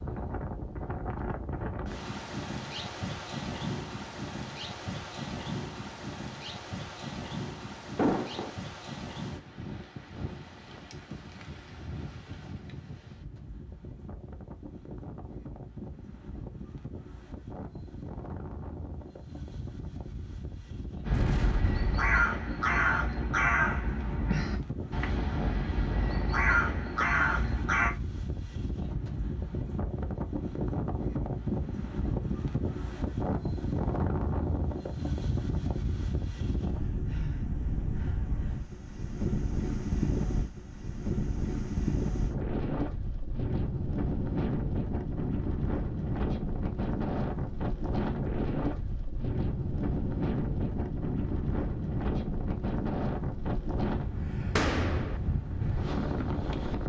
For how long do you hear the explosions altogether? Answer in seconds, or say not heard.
2 s.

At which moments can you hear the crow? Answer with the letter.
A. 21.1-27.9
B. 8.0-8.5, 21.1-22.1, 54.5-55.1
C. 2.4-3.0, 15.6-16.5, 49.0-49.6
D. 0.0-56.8
A.